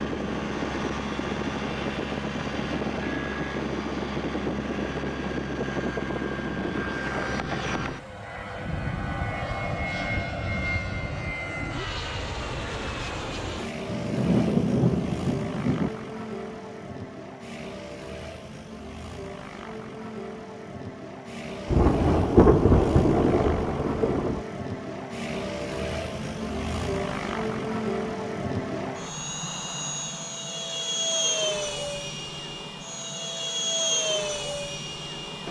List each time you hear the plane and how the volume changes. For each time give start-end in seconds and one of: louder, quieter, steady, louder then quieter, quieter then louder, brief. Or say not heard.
0.0-35.4 quieter then louder.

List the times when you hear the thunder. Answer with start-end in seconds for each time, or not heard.
13.8-15.9, 21.6-24.4.